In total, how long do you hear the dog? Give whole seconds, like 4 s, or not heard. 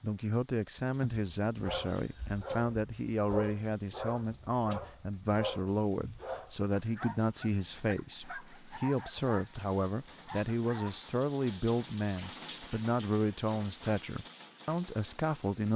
10 s.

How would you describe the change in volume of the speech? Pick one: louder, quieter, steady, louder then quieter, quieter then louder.
steady.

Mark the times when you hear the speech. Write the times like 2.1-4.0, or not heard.
0.0-15.7.